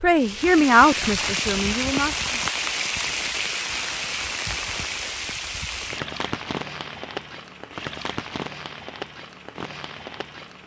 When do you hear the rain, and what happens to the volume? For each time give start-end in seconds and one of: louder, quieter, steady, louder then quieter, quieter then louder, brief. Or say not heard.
0.0-10.6 quieter.